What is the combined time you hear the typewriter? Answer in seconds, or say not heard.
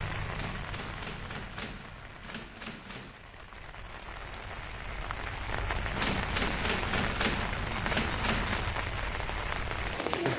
6 s.